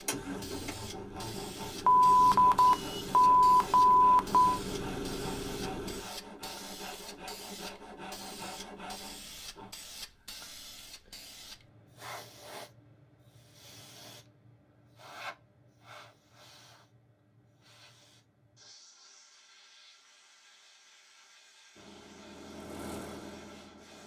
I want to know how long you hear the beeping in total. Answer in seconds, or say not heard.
3 s.